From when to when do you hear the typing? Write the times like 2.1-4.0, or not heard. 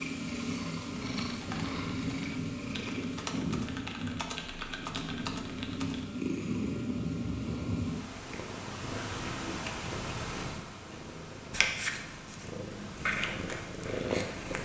0.8-6.1.